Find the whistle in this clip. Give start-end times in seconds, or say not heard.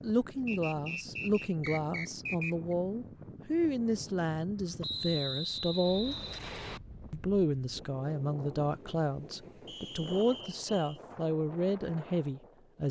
0.5-2.8, 4.8-6.8, 9.7-11.0.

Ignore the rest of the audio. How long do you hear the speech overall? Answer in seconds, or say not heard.
12 s.